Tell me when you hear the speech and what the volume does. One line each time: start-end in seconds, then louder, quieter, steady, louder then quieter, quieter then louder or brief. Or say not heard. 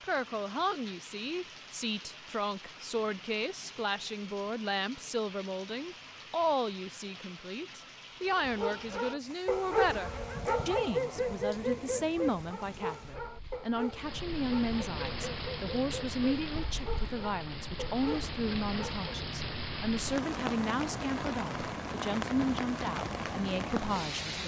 0.0-24.4 steady.